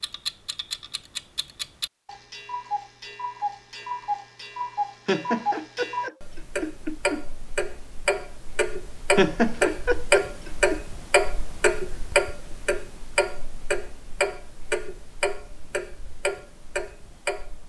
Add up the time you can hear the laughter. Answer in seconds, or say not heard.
4 s.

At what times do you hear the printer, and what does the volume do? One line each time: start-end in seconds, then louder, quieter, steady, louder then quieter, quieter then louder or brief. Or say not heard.
not heard.